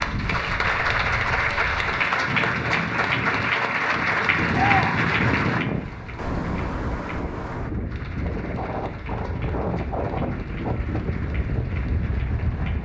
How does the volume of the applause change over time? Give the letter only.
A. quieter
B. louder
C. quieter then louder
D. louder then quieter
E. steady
A.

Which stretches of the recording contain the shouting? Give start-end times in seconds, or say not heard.
4.5-5.0.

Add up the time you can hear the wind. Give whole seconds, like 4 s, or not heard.
13 s.